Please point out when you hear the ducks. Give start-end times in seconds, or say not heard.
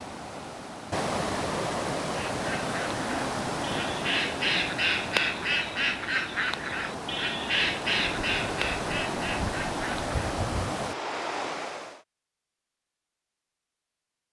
2.1-10.2.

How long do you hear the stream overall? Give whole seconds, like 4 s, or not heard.
12 s.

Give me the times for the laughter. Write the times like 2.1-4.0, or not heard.
not heard.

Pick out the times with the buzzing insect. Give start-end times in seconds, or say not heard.
not heard.